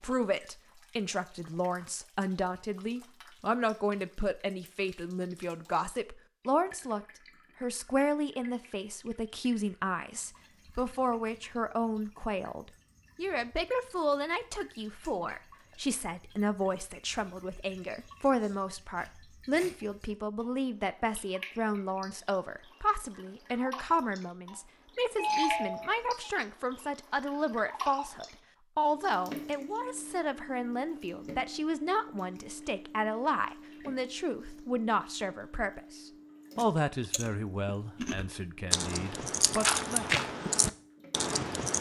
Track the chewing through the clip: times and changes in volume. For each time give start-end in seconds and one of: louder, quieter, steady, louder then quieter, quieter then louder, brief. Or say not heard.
36.5-41.7 louder.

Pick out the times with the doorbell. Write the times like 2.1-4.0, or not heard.
25.1-26.3.